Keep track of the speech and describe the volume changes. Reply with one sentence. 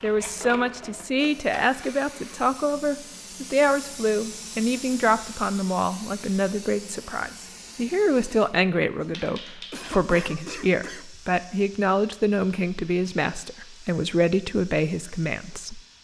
The loudness of the speech stays about the same.